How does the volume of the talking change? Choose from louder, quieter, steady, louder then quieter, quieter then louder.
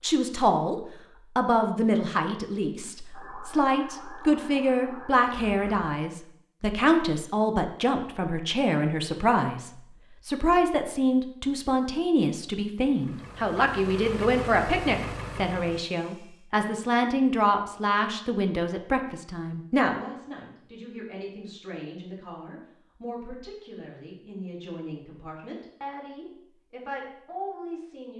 quieter.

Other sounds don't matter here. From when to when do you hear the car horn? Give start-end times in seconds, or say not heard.
not heard.